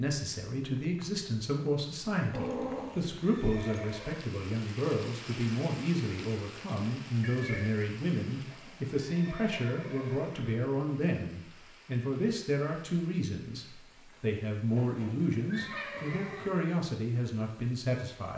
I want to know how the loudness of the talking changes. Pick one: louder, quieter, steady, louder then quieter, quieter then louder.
steady.